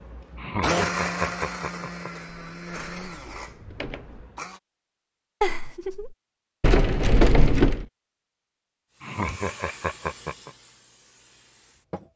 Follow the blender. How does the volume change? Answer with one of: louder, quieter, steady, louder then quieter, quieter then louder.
quieter.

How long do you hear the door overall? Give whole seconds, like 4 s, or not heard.
3 s.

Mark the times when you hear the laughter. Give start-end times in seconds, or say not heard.
0.3-2.1, 5.4-6.2, 9.0-10.5.